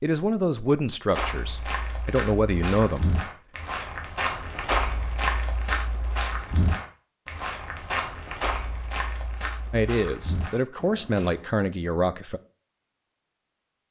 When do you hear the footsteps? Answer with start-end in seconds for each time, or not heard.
1.1-11.4.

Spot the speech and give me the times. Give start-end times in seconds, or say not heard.
0.0-3.2, 9.7-12.4.